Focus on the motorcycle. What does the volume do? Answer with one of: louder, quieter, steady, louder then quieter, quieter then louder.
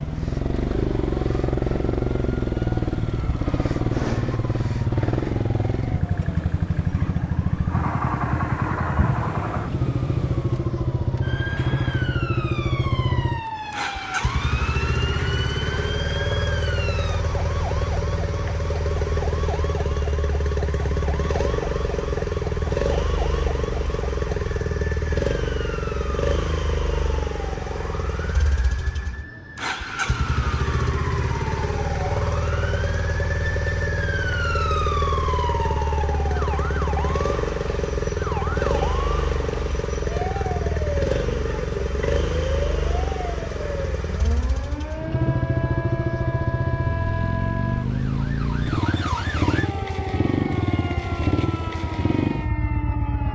steady.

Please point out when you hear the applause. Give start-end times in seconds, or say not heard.
not heard.